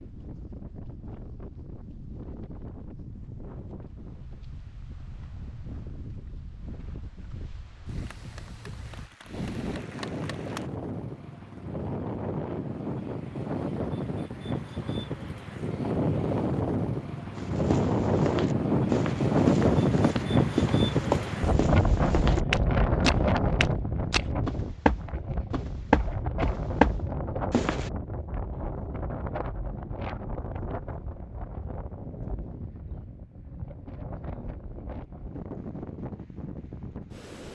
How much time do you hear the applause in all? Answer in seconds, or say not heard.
3 s.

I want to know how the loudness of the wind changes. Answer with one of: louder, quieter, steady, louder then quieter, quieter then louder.
louder then quieter.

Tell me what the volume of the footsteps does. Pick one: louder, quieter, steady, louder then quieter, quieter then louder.
louder.